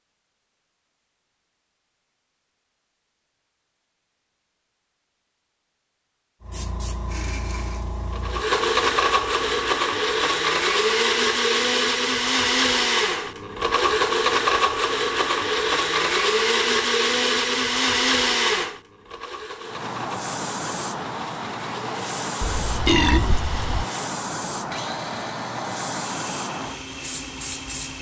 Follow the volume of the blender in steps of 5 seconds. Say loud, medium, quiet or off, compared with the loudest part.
off, loud, loud, loud, quiet, quiet.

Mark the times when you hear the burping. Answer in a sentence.
You can hear the burping from 22.4 to 23.9 s.